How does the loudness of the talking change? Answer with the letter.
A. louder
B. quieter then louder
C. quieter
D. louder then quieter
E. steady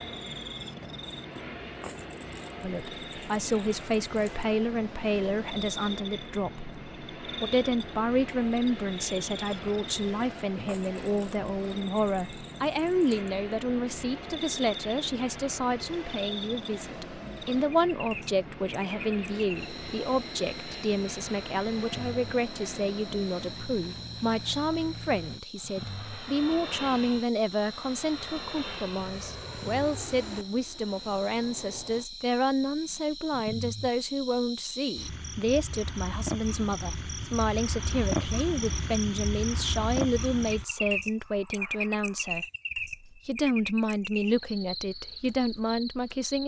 E.